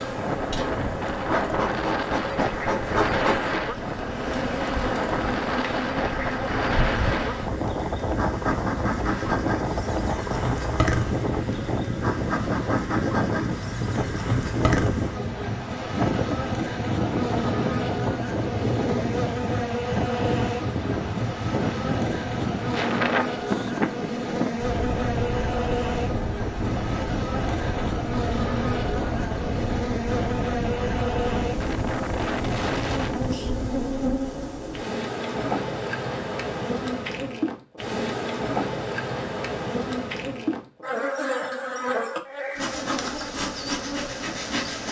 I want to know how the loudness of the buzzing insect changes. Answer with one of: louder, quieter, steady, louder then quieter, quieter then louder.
steady.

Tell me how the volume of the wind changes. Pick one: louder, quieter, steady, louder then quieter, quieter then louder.
steady.